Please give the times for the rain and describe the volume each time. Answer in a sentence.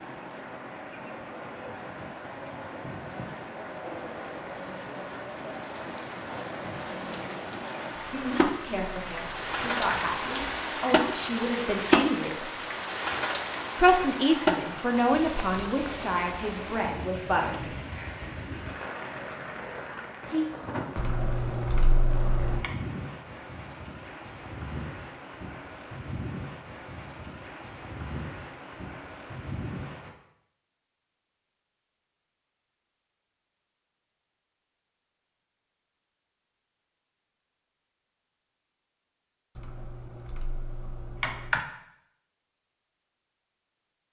The rain can be heard from 0.0 to 30.1 s, getting louder then quieter.